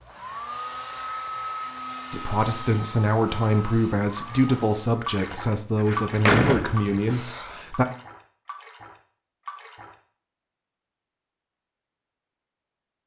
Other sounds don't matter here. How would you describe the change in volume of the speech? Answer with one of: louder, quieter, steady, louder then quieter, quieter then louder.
steady.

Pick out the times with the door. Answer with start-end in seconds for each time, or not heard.
5.8-7.6.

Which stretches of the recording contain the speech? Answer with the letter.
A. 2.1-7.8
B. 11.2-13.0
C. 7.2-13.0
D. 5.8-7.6
A.